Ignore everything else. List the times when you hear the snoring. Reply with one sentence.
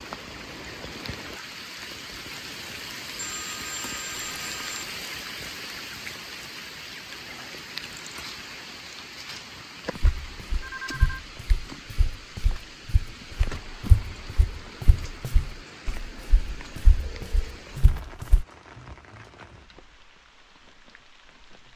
The snoring can't be heard in this clip.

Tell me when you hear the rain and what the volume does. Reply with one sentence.
You can hear the rain from 0.0 to 21.7 s, getting quieter.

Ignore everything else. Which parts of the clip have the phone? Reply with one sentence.
You can hear the phone from 3.1 to 4.8 s, from 10.6 to 11.2 s and from 17.1 to 17.6 s.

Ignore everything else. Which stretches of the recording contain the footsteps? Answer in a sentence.
You can hear the footsteps from 9.9 to 18.4 s.